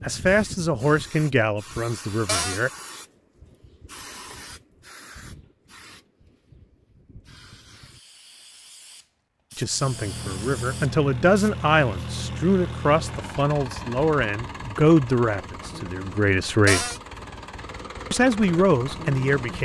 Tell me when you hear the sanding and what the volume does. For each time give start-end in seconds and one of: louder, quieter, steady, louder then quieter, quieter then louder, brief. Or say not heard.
not heard.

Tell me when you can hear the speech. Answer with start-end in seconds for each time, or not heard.
0.0-2.7, 9.6-16.9, 18.1-19.6.